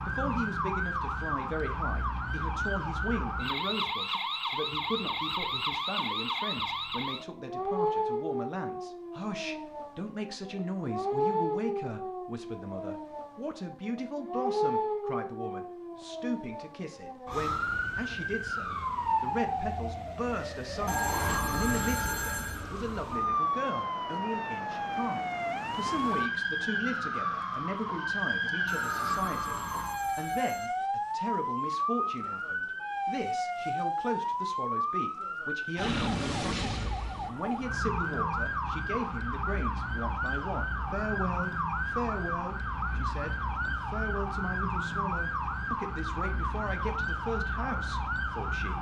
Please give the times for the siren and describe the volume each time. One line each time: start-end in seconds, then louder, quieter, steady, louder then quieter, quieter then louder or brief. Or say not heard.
0.0-48.7 steady.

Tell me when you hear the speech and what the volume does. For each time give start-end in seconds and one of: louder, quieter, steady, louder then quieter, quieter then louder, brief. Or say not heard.
0.1-48.7 steady.